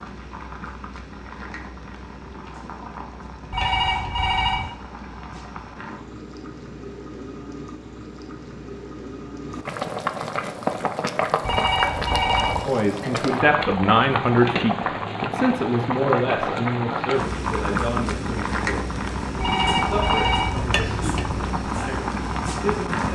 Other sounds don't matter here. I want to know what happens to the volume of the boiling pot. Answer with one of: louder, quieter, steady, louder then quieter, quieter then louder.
louder.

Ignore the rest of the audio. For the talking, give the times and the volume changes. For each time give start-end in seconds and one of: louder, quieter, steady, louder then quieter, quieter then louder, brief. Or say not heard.
12.7-23.0 quieter.